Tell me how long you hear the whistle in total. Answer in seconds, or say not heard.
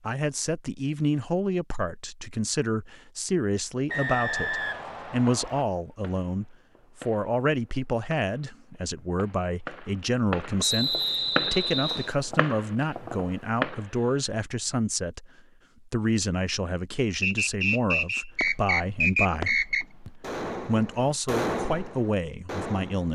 6 s.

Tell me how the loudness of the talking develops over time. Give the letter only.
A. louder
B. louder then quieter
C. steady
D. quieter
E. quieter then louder
C.